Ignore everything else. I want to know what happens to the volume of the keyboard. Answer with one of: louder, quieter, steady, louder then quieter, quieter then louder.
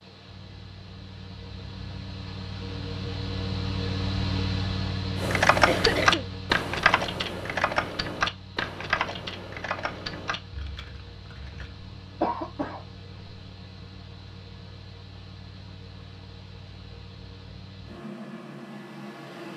quieter.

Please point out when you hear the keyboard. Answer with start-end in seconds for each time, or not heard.
5.2-11.8.